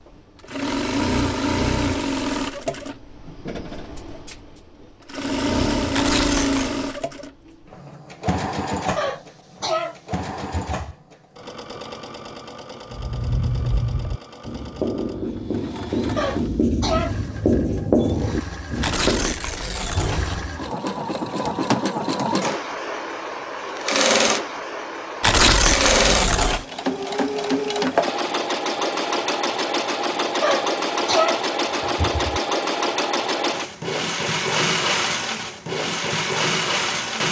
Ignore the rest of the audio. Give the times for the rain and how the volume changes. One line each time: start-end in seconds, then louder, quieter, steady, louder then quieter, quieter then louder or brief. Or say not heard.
not heard.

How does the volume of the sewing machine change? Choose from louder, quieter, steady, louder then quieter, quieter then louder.
quieter then louder.